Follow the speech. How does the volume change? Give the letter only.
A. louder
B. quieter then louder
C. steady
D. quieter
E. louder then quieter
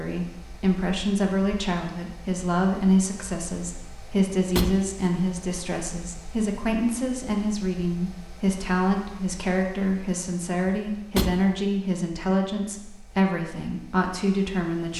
C.